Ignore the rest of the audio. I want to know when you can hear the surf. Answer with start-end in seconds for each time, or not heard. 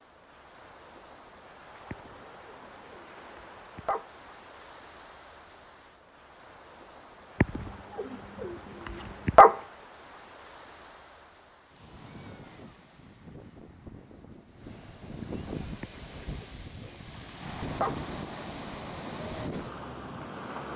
0.0-20.7.